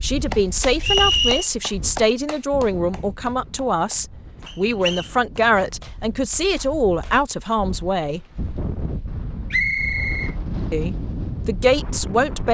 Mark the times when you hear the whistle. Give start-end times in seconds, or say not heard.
0.8-1.5, 4.5-5.1, 9.5-10.3.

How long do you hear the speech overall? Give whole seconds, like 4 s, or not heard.
10 s.